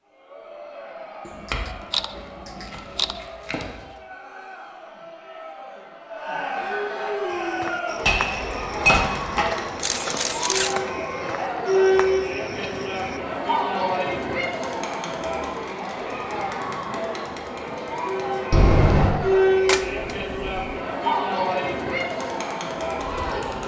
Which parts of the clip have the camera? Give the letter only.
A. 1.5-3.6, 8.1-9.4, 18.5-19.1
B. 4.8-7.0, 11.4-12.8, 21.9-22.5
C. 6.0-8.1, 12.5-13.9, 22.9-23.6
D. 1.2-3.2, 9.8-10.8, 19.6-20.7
D.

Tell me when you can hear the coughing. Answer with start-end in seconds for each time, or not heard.
not heard.